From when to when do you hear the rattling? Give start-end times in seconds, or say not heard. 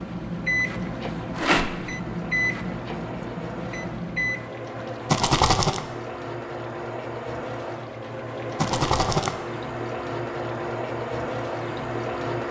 1.4-1.8, 5.1-5.8, 8.6-9.3.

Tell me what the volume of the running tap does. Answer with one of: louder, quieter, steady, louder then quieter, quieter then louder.
louder.